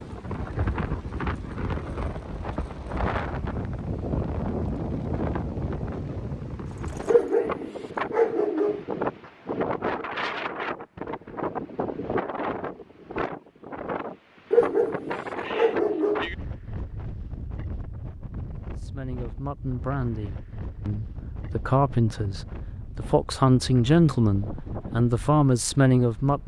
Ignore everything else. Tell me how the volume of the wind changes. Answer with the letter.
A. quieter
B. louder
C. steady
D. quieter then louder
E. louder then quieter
A.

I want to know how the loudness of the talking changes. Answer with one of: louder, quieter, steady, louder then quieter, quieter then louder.
louder.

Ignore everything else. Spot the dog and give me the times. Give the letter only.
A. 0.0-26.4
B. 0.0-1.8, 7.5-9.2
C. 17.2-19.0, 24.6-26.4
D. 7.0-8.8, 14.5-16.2
D.